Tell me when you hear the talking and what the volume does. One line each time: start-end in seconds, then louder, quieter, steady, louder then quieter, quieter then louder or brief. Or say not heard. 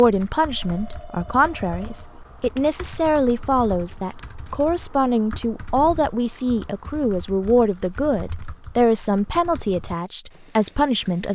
0.0-11.3 steady.